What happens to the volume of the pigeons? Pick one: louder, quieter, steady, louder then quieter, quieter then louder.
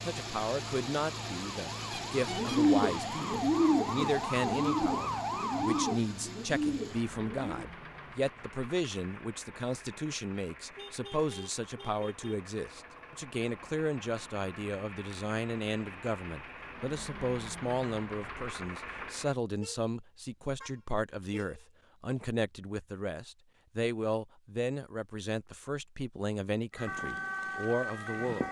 quieter.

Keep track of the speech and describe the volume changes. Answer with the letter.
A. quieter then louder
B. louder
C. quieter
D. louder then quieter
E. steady
E.